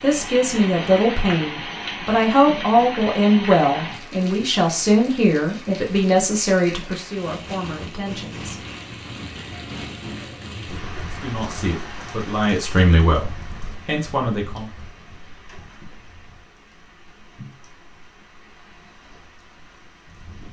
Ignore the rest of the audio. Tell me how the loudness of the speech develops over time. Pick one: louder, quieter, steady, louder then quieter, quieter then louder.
quieter then louder.